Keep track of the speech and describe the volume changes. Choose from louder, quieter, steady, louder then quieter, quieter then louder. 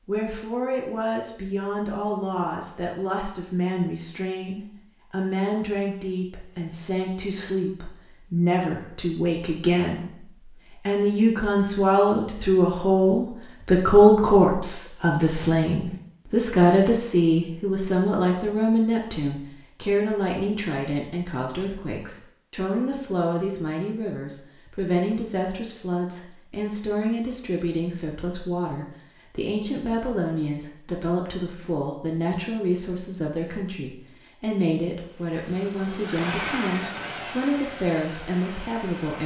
louder then quieter.